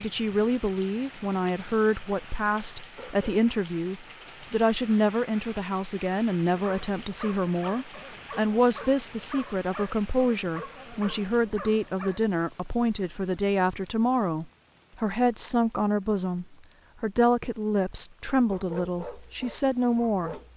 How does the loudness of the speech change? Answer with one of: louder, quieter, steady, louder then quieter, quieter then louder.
steady.